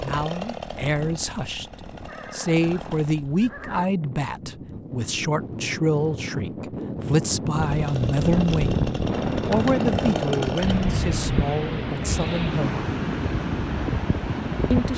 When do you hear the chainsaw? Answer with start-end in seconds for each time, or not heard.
0.0-3.3, 7.5-11.1.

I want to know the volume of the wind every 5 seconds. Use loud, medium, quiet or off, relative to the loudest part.
quiet, loud, loud.